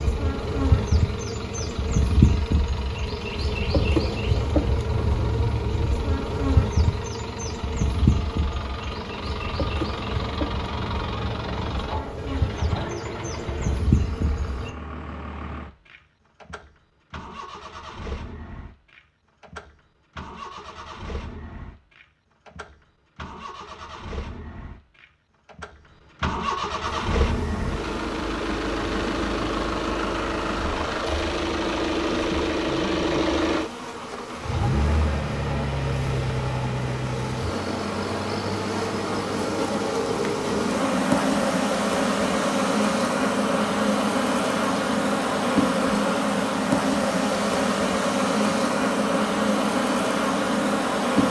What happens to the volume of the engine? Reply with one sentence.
The volume of the engine goes up, then down.